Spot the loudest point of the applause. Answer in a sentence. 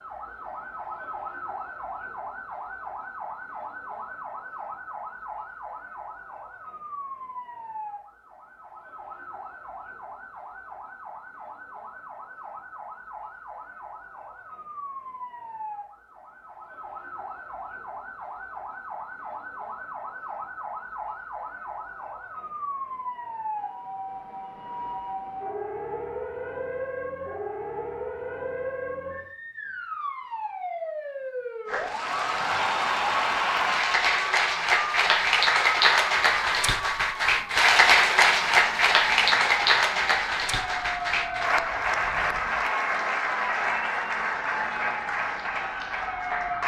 The loudest moment of the applause is at 38 seconds.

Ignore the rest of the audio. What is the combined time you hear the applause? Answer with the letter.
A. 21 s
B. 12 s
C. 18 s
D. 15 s
D.